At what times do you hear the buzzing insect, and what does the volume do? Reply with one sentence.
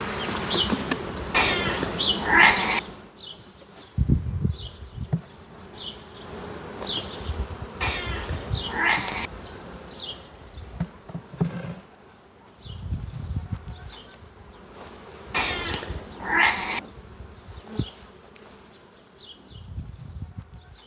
The buzzing insect can be heard from 0.0 to 20.8 s, getting quieter.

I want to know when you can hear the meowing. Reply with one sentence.
You can hear the meowing from 1.3 to 2.8 s, from 7.8 to 9.3 s and from 15.3 to 16.8 s.